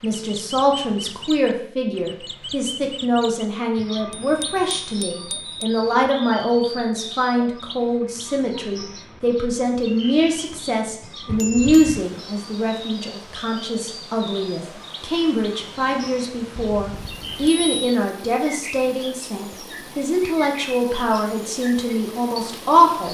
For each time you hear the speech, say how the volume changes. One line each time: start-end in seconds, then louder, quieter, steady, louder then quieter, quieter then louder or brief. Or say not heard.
0.0-23.0 steady.